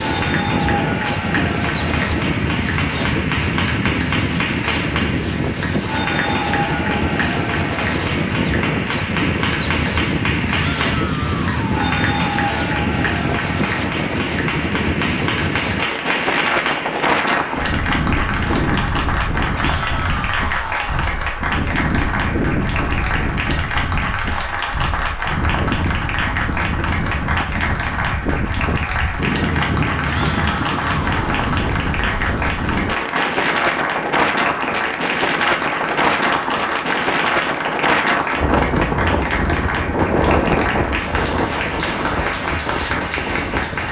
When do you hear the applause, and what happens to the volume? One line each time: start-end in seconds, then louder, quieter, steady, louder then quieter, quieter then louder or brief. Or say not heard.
0.0-43.8 steady.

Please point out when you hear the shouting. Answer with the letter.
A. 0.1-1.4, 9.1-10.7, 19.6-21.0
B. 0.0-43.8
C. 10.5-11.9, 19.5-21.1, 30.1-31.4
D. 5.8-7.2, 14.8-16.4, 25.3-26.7
C.